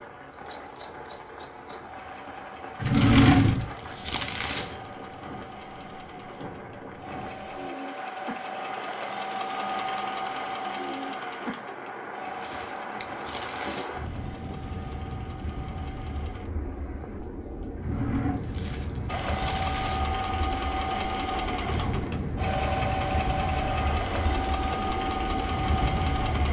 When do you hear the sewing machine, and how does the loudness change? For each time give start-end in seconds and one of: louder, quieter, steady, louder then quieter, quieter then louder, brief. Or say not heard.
0.2-16.5 louder then quieter
19.1-26.4 steady.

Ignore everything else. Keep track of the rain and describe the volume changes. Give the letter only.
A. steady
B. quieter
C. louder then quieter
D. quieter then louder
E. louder
E.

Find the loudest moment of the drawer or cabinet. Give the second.
3 s.